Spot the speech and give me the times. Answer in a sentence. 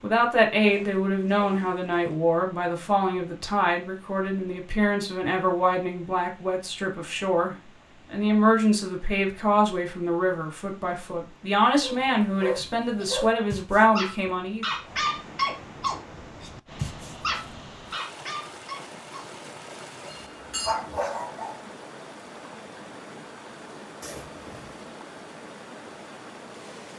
You can hear the speech from 0.0 to 14.7 s.